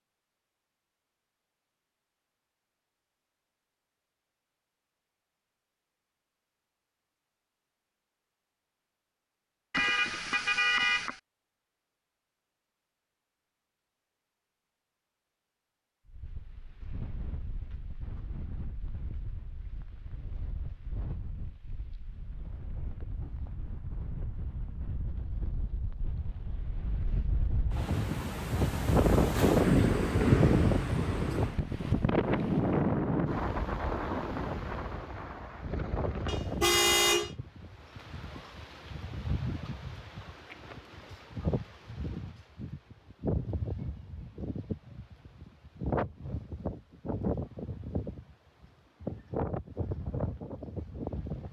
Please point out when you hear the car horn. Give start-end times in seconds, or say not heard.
9.7-11.2, 36.2-37.3.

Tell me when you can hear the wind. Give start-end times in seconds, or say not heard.
16.1-51.4.